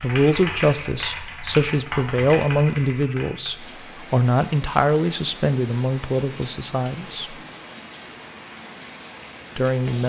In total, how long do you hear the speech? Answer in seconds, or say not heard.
8 s.